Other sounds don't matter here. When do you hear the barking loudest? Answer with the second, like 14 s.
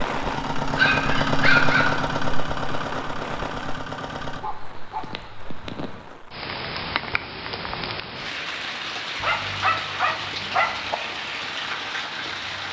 2 s.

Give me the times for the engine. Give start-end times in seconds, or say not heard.
0.0-4.4.